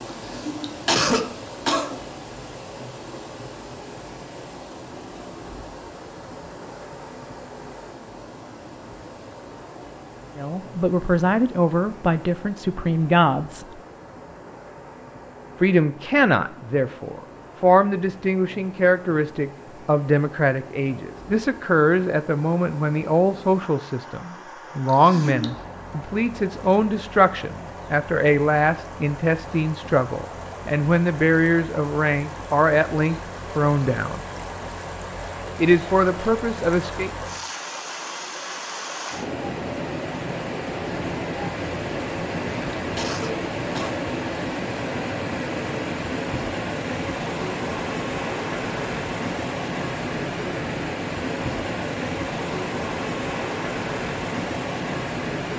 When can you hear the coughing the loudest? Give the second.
1 s.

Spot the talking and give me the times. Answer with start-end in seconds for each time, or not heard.
10.3-13.8, 15.6-34.2, 35.5-37.1.